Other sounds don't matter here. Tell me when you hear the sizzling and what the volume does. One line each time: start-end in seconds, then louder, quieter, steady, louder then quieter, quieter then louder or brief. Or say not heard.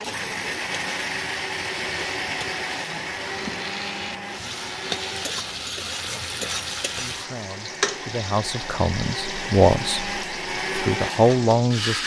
0.0-11.9 louder then quieter.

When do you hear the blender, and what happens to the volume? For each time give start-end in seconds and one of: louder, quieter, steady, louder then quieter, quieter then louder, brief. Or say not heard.
0.0-12.0 quieter then louder.